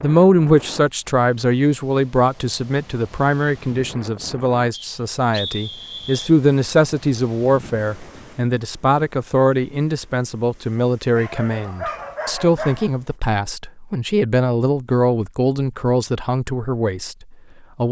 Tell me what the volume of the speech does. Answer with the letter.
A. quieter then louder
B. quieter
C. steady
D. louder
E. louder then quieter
C.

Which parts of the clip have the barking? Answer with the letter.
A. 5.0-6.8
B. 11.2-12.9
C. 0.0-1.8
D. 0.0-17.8
B.